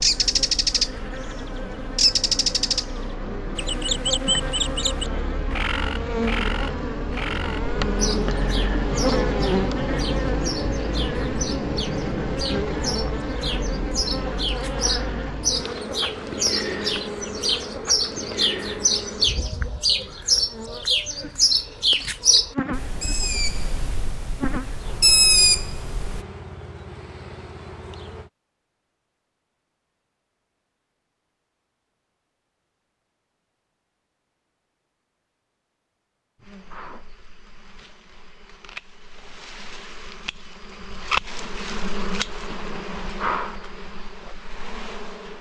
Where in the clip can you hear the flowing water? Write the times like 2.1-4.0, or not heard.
not heard.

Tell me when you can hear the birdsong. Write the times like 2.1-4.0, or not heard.
0.0-0.9, 1.9-2.9, 3.5-26.2.